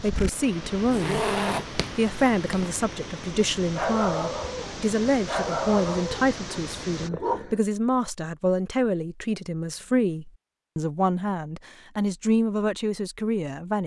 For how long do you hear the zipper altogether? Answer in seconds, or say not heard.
2 s.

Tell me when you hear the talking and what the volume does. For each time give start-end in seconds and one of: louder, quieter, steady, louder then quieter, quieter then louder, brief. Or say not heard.
0.0-1.4 brief
1.9-13.8 steady.